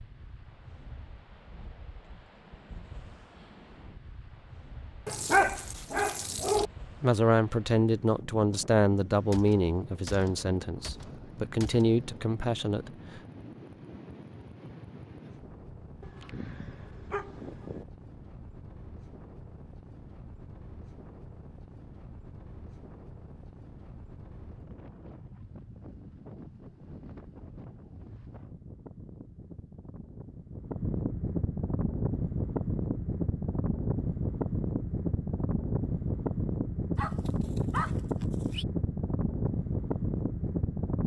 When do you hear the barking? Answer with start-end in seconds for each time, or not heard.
5.0-6.7, 16.0-17.9, 37.0-38.6.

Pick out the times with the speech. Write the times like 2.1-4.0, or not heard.
7.0-13.2.